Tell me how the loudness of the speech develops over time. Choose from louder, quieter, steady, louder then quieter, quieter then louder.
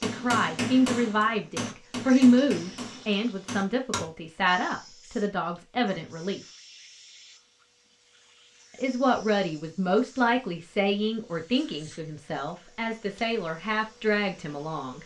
quieter.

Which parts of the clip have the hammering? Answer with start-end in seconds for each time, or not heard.
0.0-4.1.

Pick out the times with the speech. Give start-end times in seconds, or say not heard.
0.0-6.4, 8.8-15.0.